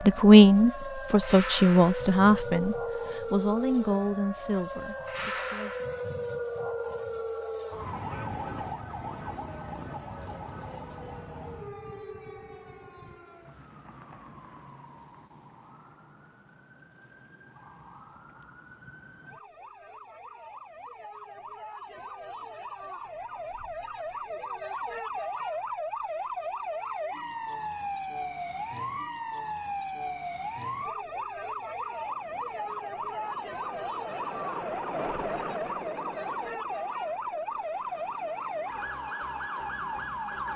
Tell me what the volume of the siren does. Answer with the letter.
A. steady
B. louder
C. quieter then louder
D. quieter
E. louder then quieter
C.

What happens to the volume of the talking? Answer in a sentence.
The volume of the talking goes down.